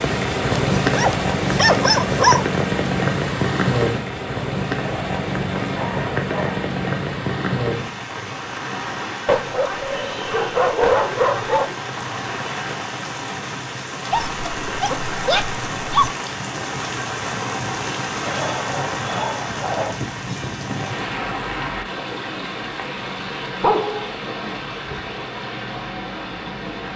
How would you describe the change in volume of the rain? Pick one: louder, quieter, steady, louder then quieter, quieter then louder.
quieter.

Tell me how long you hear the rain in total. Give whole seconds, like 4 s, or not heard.
27 s.